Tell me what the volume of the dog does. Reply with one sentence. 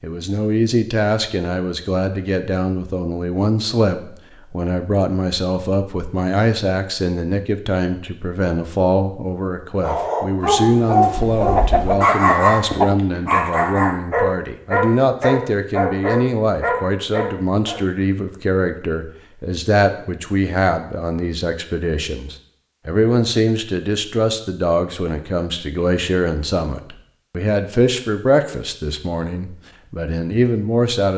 The loudness of the dog stays about the same.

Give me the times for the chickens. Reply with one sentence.
The chickens can be heard from 11.4 to 12.9 s.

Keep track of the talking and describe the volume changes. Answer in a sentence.
The volume of the talking stays about the same.